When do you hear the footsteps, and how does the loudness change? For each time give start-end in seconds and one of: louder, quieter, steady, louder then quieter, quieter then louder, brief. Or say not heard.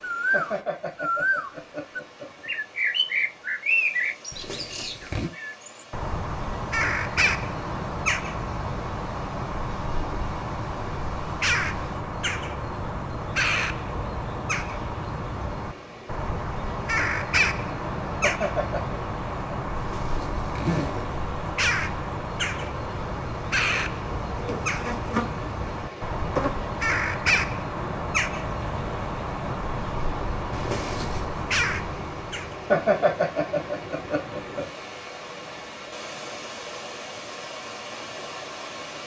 not heard.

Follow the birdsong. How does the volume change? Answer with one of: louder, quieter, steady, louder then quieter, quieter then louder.
steady.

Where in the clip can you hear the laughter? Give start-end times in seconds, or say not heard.
0.3-2.5, 18.2-18.9, 32.7-34.6.